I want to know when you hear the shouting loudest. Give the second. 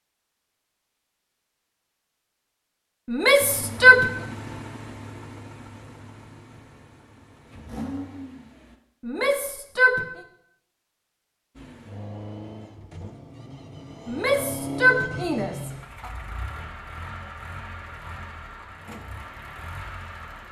4 s.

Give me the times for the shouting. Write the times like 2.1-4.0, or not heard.
3.1-4.0, 9.1-10.0, 14.1-15.7.